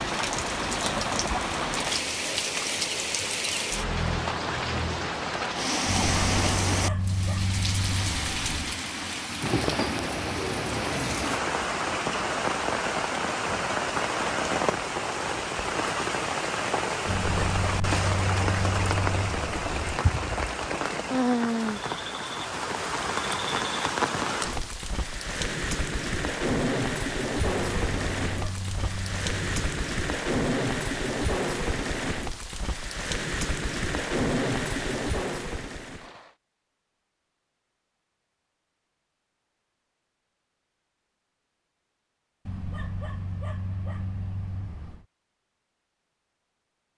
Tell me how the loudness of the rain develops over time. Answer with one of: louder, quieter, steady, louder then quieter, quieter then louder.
steady.